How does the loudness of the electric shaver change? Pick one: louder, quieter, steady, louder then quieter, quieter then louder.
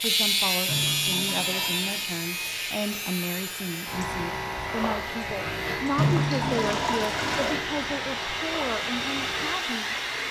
quieter.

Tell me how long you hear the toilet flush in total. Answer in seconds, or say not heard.
3 s.